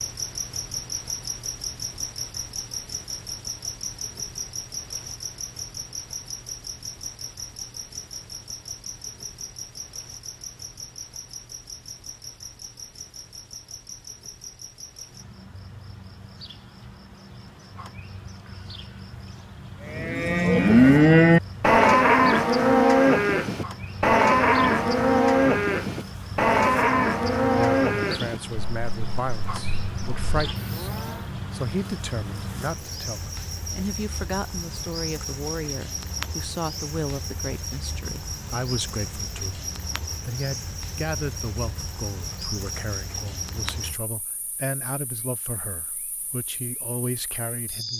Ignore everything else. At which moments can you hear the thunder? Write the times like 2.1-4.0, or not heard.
not heard.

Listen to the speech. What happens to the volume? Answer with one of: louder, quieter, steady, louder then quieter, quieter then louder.
steady.